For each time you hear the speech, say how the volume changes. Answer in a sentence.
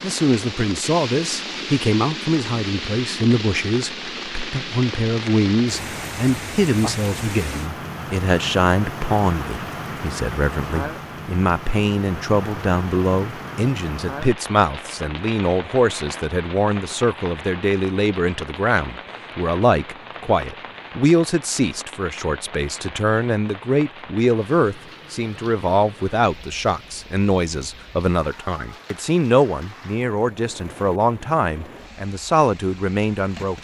You can hear the speech from 0.0 to 33.5 s, at a steady volume.